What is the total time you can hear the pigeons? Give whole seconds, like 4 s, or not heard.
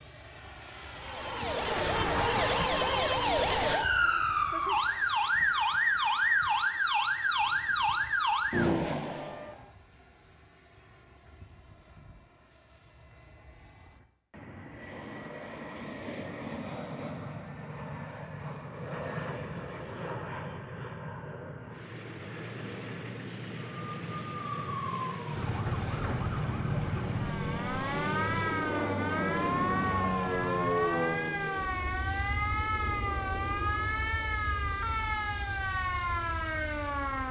not heard.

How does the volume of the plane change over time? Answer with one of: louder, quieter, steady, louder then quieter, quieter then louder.
quieter then louder.